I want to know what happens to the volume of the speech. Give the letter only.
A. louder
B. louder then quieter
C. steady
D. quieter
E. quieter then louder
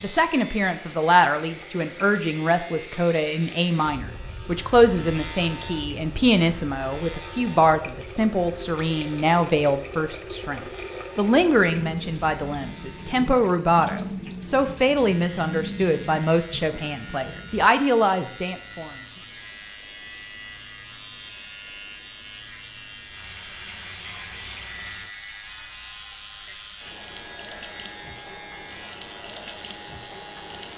C.